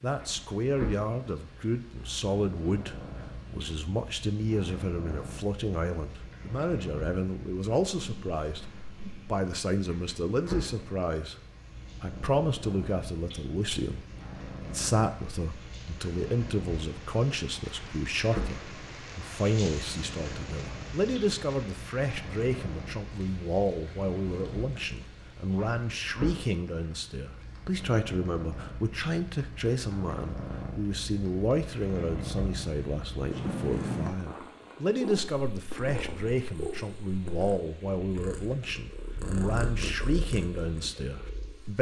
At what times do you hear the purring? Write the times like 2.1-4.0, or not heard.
0.1-41.7.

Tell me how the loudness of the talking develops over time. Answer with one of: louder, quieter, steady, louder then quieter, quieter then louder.
steady.